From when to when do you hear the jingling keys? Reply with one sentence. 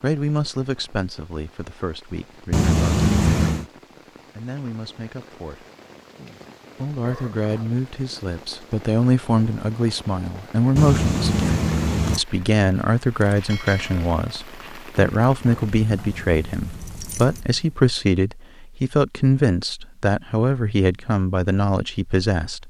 The jingling keys can be heard from 2.5 to 3.6 s, from 10.8 to 12.2 s and from 15.4 to 17.4 s.